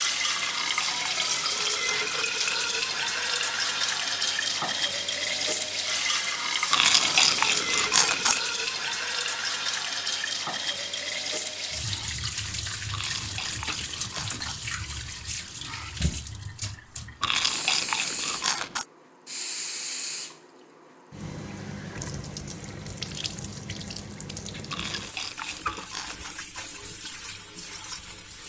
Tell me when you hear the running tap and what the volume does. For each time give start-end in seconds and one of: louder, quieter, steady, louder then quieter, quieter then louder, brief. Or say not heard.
0.0-28.4 quieter.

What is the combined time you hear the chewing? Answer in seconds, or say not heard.
9 s.